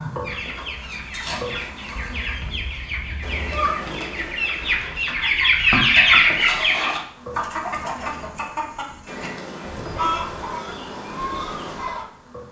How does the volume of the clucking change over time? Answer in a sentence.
The loudness of the clucking goes up, then down.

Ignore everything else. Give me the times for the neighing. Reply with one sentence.
You can hear the neighing from 2.0 to 3.8 s.